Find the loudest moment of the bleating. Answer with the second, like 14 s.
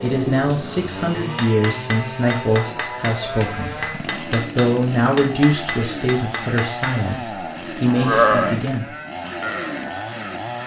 8 s.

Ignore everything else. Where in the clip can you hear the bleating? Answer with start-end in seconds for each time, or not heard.
7.3-10.6.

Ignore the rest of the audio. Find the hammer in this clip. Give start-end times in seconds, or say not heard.
1.4-7.0.